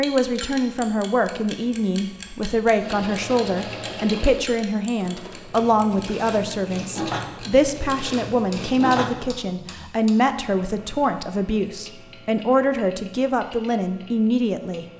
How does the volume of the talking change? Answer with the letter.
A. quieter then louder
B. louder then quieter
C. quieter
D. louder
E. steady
E.